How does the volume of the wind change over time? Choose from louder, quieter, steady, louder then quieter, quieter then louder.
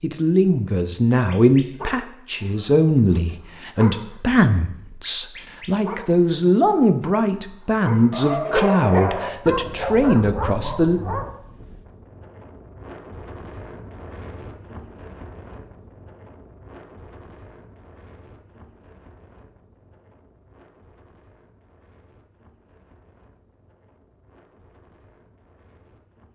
quieter.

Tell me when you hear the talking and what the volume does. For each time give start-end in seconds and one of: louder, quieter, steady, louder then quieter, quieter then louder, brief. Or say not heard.
0.0-11.0 steady.